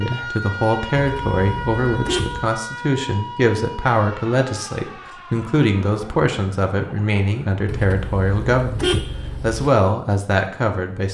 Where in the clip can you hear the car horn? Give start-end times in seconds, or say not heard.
0.9-2.5, 7.7-9.7.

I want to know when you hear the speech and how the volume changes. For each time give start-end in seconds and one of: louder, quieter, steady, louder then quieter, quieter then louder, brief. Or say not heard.
0.0-11.1 steady.